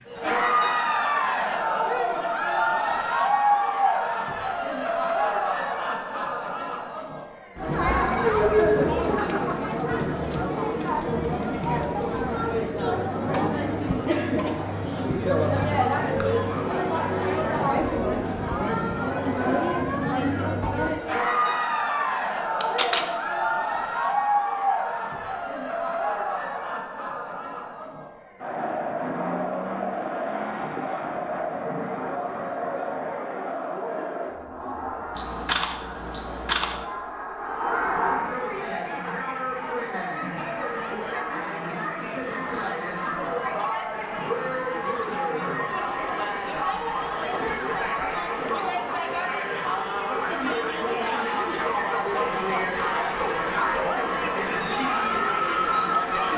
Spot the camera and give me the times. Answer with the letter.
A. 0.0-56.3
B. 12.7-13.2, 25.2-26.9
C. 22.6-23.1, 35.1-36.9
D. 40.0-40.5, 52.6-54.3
C.